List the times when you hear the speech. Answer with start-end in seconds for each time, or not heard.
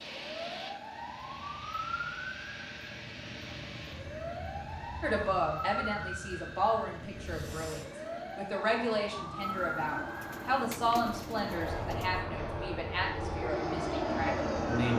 5.0-14.9.